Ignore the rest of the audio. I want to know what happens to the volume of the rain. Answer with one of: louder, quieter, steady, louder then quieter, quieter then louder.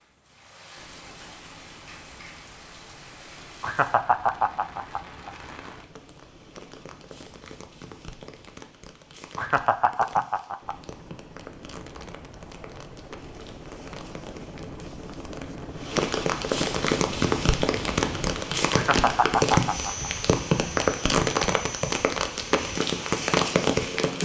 louder.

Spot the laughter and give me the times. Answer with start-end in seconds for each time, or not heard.
3.6-5.3, 9.3-10.8, 18.7-20.1.